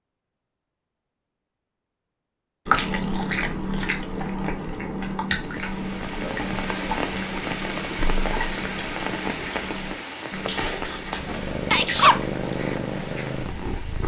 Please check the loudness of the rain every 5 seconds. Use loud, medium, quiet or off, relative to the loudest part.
off, loud, medium.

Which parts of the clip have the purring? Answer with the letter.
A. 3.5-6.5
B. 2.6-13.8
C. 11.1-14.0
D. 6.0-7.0
C.